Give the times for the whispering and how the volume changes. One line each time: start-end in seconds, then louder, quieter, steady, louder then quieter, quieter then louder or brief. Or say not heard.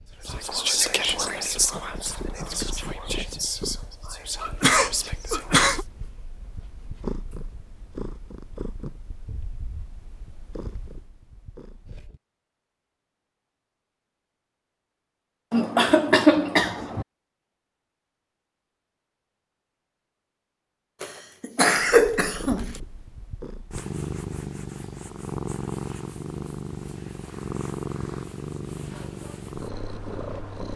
0.2-5.8 quieter.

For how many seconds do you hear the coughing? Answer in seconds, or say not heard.
5 s.